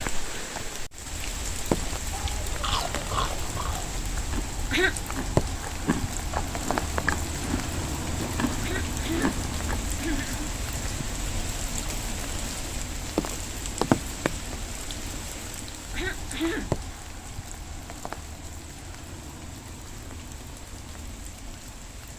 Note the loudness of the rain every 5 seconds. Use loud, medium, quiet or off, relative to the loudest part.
loud, loud, loud, medium, quiet.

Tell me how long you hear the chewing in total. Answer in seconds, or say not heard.
8 s.